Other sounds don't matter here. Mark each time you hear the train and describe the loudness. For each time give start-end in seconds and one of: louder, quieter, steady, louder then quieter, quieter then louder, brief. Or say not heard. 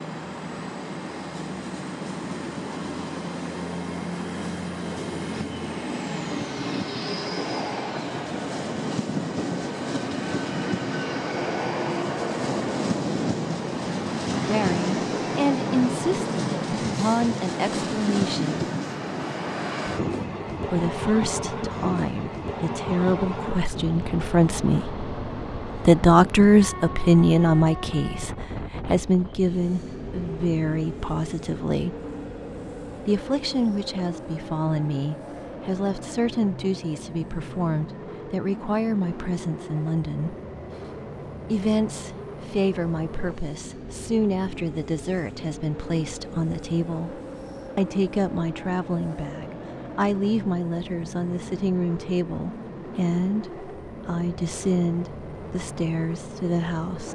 0.0-57.0 quieter.